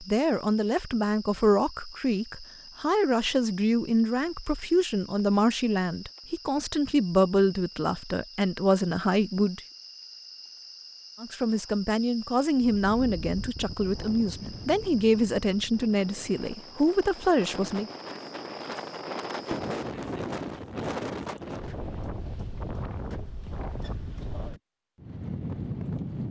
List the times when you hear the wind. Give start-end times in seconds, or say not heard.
12.6-26.2.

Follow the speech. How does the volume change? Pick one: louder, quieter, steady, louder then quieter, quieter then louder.
steady.